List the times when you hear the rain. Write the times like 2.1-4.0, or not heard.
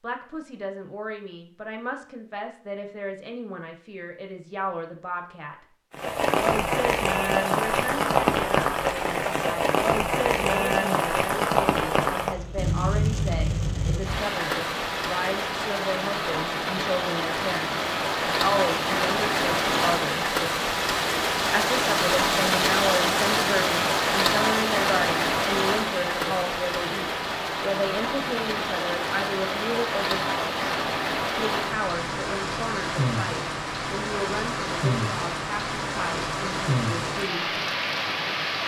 5.9-38.6.